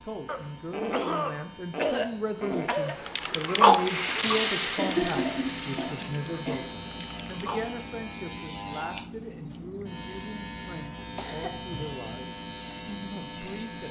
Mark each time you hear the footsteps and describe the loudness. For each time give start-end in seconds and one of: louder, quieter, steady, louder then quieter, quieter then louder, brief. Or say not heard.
not heard.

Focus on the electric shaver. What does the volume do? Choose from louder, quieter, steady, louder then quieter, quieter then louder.
louder.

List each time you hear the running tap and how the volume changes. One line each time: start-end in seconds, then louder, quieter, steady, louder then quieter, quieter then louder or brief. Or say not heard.
3.0-7.7 quieter.